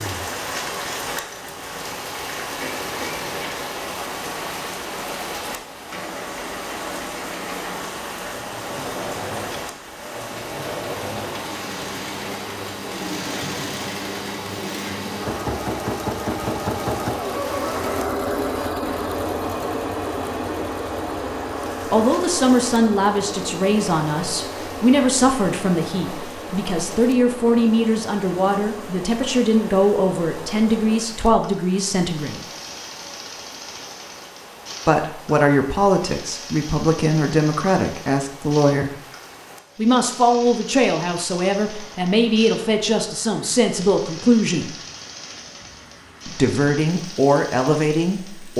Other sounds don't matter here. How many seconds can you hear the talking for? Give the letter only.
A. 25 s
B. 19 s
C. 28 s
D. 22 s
D.